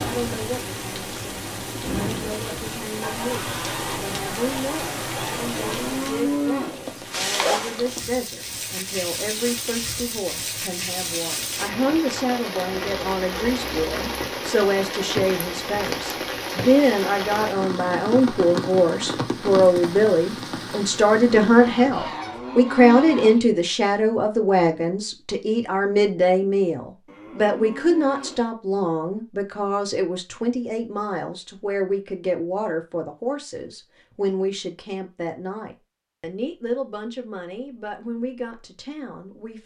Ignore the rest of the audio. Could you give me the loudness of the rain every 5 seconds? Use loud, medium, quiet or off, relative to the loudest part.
loud, loud, loud, loud, medium, off, off, off.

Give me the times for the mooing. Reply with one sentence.
The mooing can be heard from 5.5 to 6.8 s, from 22.1 to 23.4 s and from 27.1 to 28.4 s.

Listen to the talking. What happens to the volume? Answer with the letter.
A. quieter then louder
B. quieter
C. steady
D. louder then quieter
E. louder
D.